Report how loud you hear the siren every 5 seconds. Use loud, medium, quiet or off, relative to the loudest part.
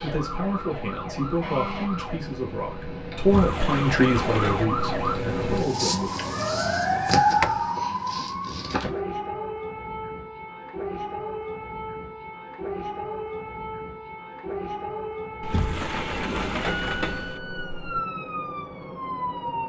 medium, loud, medium, medium.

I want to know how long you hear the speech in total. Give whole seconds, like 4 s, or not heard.
6 s.